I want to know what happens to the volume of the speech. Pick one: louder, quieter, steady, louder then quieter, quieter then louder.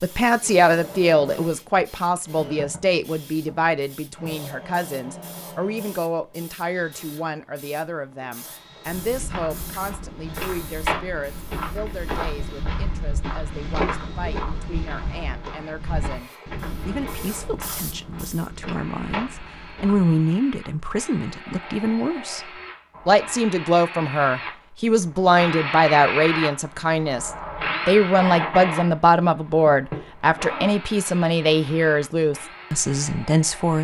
quieter then louder.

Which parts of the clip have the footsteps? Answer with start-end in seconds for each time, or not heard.
8.8-20.1.